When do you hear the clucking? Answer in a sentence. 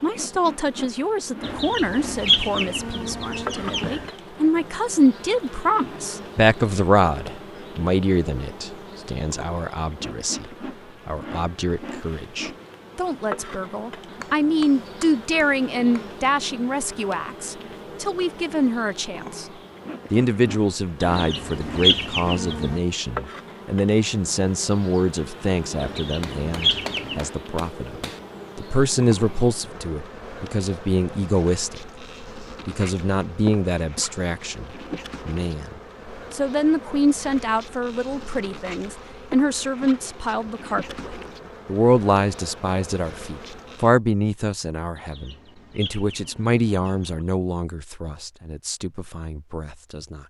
You can hear the clucking from 1.4 to 4.1 s, from 21.0 to 22.8 s, from 25.8 to 27.2 s and from 45.0 to 47.2 s.